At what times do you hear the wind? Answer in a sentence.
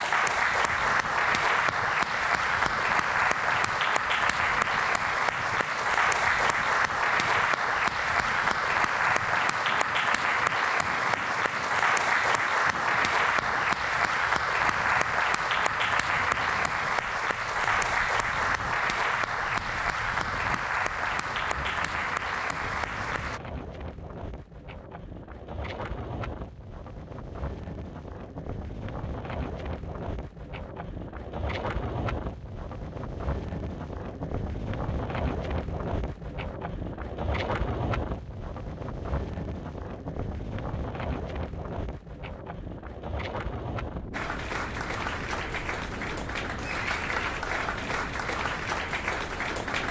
The wind can be heard from 0.0 to 49.8 s.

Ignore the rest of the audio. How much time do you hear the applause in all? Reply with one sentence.
The applause can be heard for 29 seconds in total.